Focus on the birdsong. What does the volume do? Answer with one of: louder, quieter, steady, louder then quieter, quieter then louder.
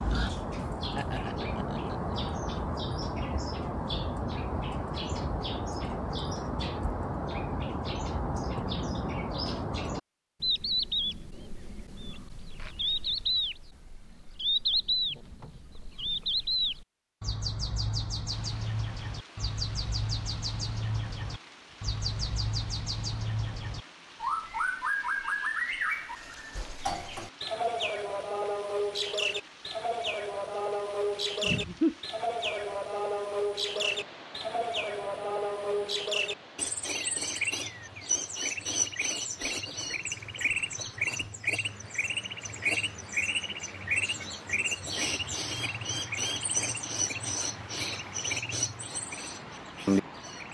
steady.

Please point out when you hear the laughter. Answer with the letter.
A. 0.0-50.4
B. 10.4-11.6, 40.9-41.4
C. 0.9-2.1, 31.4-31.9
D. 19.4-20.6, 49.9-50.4
C.